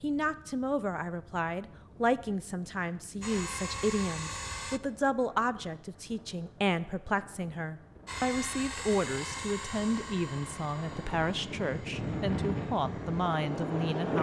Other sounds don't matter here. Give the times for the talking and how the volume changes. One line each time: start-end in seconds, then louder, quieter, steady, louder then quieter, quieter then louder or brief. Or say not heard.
0.0-14.1 steady.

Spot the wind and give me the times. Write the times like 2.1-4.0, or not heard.
0.0-14.1.